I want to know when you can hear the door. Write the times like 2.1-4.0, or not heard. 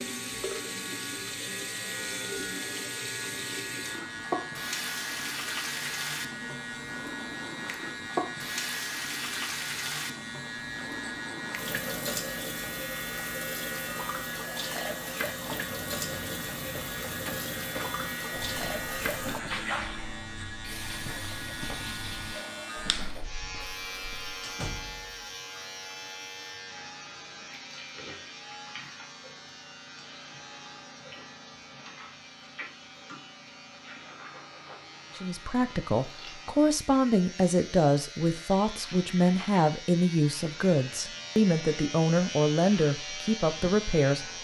24.4-25.1.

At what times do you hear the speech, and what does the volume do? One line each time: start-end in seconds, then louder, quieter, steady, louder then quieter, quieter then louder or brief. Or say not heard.
35.1-44.3 steady.